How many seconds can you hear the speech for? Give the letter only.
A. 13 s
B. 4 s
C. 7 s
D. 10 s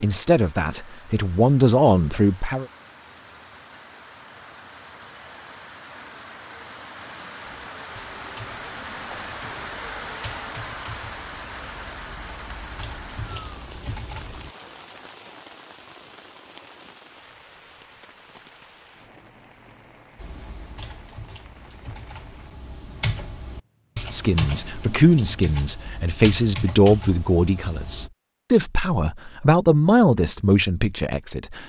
D.